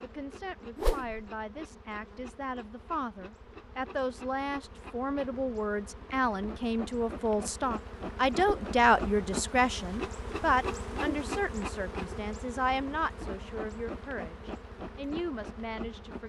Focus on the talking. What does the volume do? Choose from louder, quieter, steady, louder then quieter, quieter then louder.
louder then quieter.